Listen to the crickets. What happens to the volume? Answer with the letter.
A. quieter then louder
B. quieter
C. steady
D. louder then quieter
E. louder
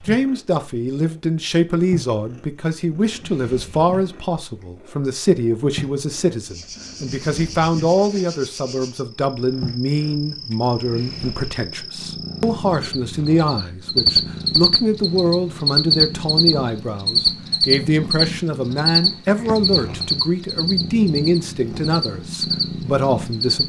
D.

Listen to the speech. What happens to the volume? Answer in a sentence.
The loudness of the speech stays about the same.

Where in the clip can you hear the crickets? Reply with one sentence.
The crickets can be heard from 6.5 to 23.6 s.